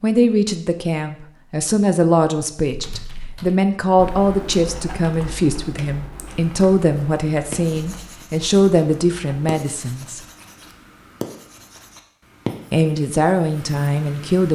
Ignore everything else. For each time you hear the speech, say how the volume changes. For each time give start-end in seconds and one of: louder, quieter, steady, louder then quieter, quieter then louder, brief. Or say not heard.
0.0-10.2 steady
12.7-14.5 brief.